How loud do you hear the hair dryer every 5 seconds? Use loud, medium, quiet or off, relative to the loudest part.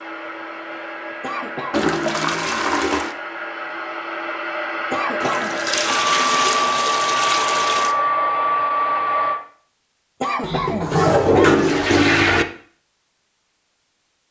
medium, loud, off.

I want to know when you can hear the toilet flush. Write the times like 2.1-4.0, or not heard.
1.7-3.1, 5.2-8.0, 10.4-12.4.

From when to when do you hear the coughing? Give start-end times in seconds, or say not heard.
1.2-2.0, 4.9-5.5, 10.2-11.8.